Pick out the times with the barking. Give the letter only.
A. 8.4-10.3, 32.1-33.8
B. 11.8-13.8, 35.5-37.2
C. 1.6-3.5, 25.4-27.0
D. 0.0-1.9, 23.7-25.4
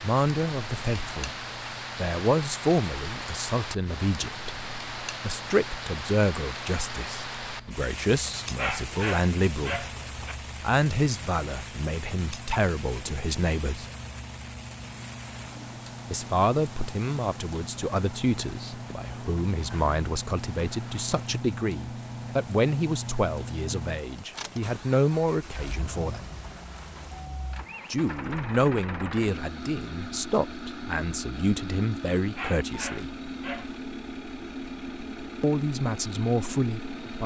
A.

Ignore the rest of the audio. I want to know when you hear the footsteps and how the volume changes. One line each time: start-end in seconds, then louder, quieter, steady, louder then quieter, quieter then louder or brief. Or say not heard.
not heard.